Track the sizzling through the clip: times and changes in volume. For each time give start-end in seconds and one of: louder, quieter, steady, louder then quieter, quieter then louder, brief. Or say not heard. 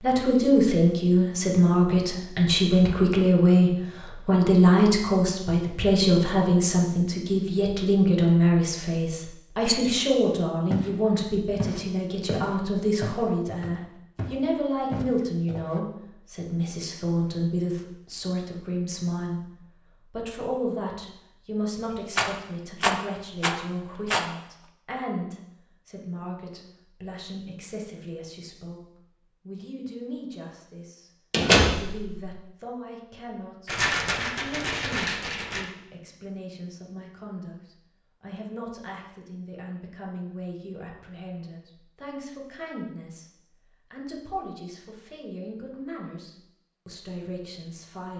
not heard.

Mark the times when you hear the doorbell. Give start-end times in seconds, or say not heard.
31.3-32.2.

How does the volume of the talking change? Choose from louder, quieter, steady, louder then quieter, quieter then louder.
quieter.